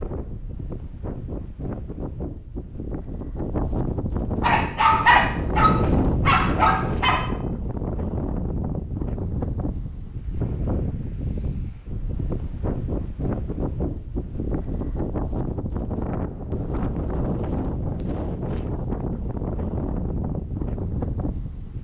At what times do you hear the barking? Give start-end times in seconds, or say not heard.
4.4-7.3.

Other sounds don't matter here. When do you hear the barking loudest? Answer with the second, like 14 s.
5 s.